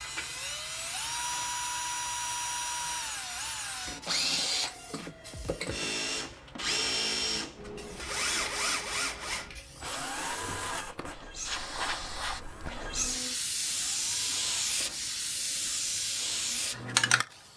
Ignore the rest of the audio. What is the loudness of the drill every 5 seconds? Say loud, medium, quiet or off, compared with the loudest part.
loud, loud, medium, quiet.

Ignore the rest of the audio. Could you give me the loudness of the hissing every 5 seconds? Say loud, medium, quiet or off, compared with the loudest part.
quiet, quiet, loud, loud.